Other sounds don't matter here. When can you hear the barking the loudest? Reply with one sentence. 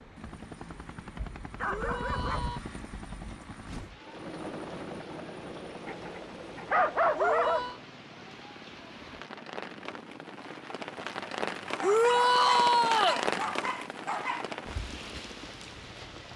The volume of the barking peaks at 7 seconds.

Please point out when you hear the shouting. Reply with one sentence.
You can hear the shouting from 1.6 to 2.6 s, from 7.2 to 7.8 s and from 11.8 to 13.2 s.